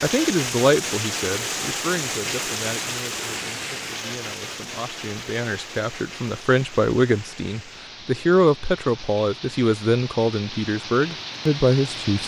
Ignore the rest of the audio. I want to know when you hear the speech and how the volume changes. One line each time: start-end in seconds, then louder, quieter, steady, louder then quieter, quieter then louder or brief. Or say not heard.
0.0-12.2 quieter then louder.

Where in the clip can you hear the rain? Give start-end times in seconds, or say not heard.
0.0-12.2.